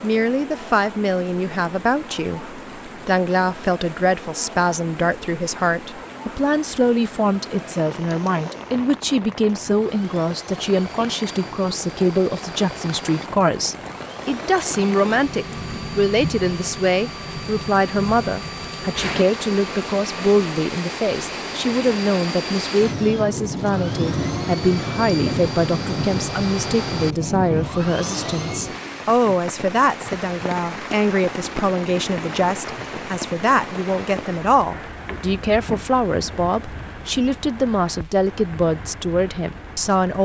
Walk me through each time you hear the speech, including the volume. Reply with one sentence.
The speech can be heard from 0.0 to 40.2 s, at a steady volume.